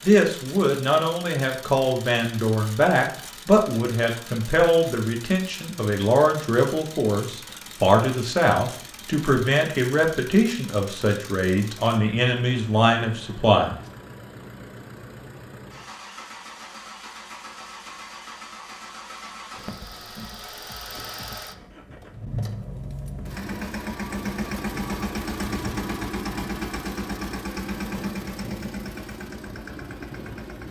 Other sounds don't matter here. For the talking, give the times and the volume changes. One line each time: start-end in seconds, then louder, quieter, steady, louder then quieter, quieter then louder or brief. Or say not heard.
0.0-13.8 steady.